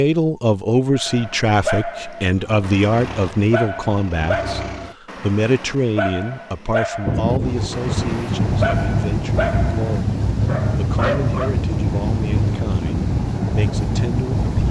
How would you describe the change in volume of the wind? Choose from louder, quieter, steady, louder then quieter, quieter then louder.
steady.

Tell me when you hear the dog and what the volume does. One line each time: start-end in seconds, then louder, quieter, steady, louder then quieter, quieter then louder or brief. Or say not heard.
0.9-11.6 steady.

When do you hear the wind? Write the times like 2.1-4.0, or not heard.
7.0-14.6.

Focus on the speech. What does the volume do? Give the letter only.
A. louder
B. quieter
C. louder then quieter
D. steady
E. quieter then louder
B.